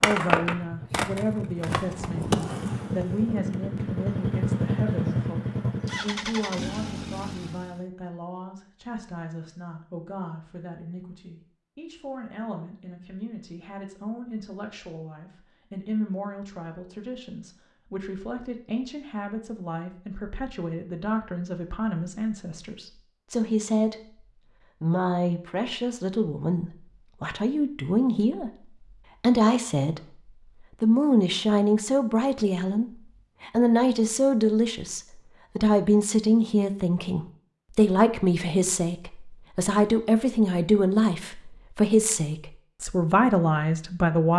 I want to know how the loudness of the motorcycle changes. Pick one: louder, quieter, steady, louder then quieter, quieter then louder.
louder then quieter.